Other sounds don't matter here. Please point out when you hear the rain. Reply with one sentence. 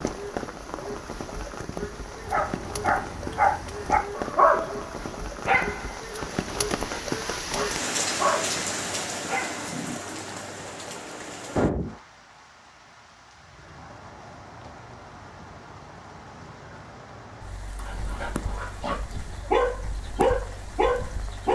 You can hear the rain from 0.0 to 21.5 s.